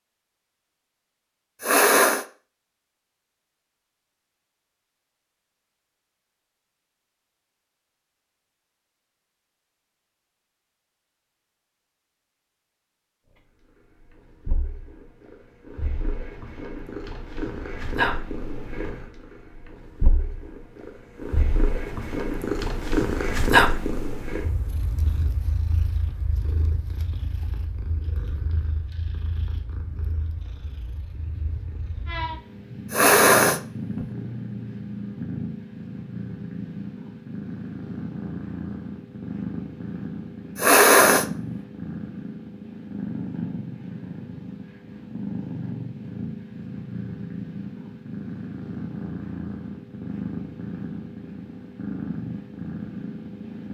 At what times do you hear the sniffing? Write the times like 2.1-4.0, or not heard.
1.6-2.2, 32.9-34.0, 40.5-41.2.